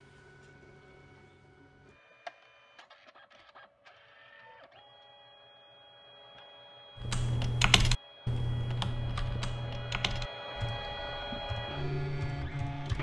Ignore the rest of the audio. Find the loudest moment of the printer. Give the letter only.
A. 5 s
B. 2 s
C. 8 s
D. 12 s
D.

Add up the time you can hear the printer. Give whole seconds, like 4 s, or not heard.
13 s.